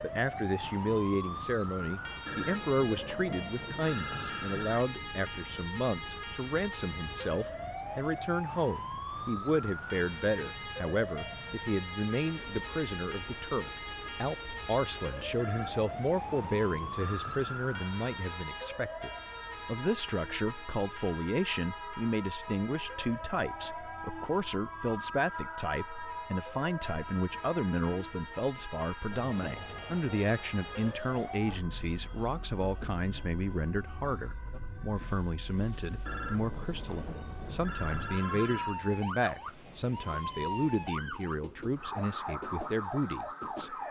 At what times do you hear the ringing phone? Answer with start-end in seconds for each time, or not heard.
2.2-4.8, 15.3-17.6, 36.0-38.8.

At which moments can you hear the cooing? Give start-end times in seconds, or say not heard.
not heard.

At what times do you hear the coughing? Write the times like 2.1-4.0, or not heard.
not heard.